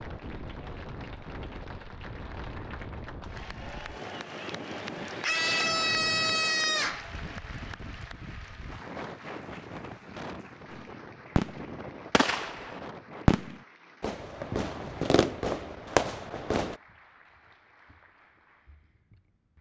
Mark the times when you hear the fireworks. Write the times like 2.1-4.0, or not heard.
10.7-16.8.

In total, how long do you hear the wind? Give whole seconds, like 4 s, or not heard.
13 s.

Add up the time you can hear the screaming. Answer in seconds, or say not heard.
2 s.